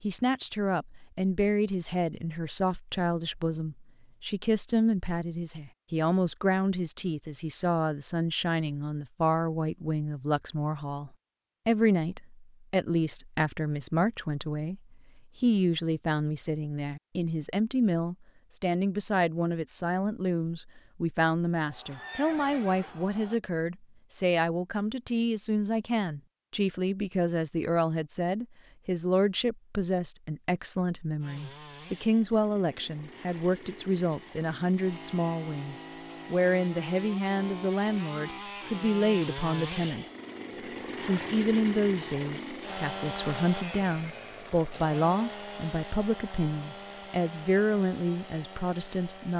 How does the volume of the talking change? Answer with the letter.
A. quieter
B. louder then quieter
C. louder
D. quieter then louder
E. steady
E.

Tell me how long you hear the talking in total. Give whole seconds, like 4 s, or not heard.
49 s.